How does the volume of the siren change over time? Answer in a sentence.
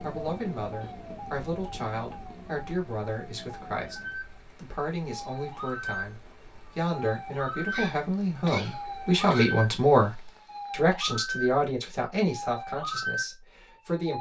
The volume of the siren goes up.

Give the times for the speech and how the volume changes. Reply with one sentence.
The speech can be heard from 0.0 to 14.1 s, getting louder then quieter.